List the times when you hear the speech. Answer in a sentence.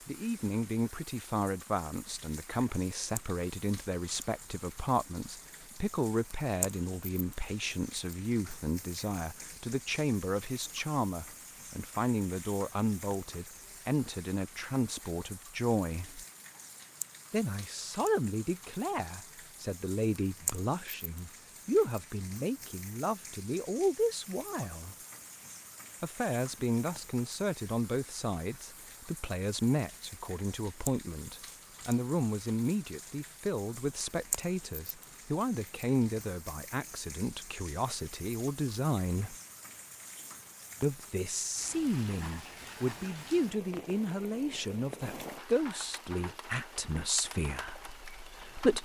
The speech can be heard from 0.1 to 16.2 s, from 17.3 to 24.9 s, from 26.0 to 39.4 s and from 40.8 to 48.8 s.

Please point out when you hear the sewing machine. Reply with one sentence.
The sewing machine can't be heard in this clip.